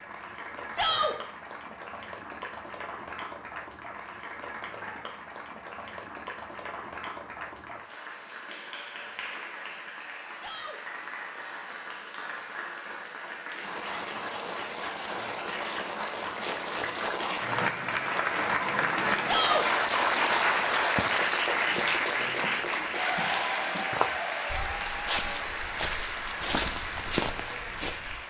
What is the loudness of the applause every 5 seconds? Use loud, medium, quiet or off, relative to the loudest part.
quiet, quiet, medium, loud, loud, medium.